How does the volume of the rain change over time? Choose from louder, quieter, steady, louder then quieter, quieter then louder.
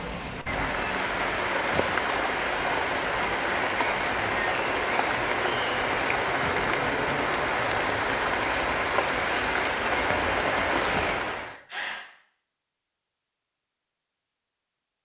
steady.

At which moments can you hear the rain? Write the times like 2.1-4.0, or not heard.
0.0-11.6.